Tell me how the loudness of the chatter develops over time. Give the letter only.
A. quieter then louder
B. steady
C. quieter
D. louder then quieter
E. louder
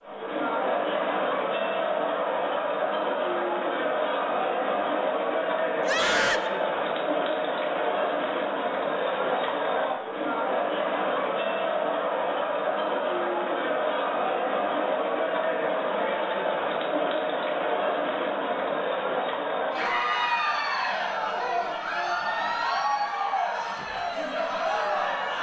B.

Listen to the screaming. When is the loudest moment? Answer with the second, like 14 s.
6 s.